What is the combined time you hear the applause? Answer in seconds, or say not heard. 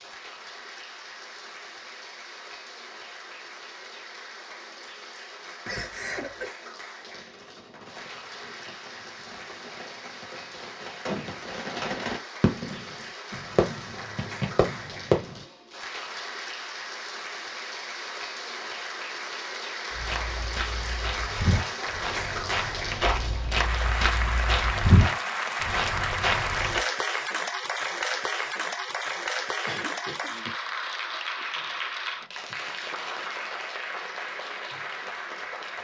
36 s.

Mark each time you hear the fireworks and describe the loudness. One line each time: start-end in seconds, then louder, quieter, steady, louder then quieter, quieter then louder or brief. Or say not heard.
7.0-15.4 louder.